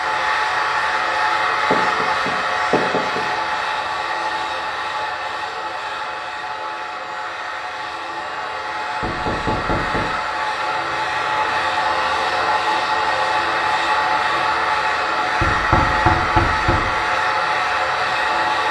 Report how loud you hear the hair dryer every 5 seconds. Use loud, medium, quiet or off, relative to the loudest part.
loud, medium, loud, loud.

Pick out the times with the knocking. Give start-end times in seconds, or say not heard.
1.7-3.2, 9.0-10.1, 15.4-16.9.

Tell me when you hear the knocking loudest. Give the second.
16 s.